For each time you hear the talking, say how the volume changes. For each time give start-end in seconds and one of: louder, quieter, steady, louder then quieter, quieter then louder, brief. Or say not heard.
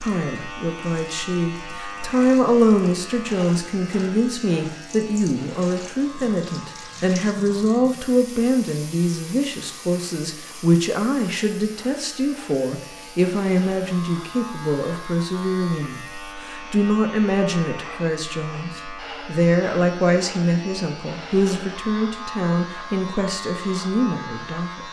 0.0-24.8 steady.